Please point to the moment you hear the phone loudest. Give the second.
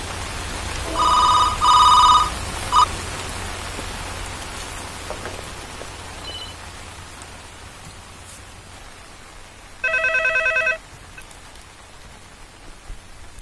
2 s.